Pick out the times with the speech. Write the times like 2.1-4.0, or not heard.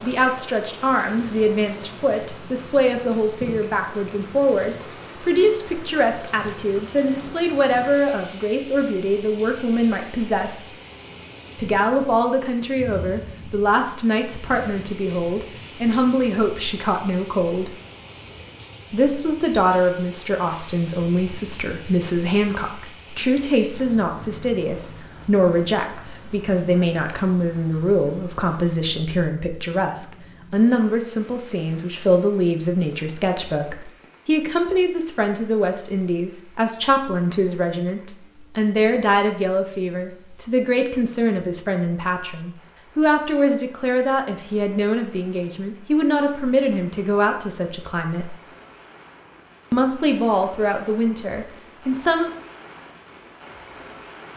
0.0-10.7, 11.6-17.8, 18.9-48.4, 49.7-52.3.